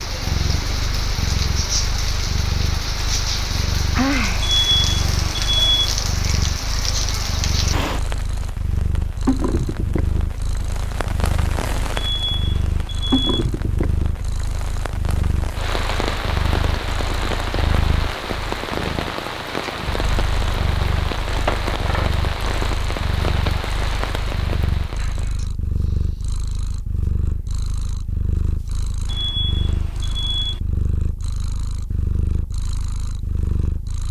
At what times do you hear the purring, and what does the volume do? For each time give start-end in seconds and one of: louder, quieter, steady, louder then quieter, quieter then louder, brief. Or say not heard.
0.0-34.0 steady.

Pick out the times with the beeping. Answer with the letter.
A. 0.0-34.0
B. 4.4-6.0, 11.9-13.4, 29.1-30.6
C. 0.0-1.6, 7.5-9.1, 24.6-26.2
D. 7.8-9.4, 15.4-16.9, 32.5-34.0
B.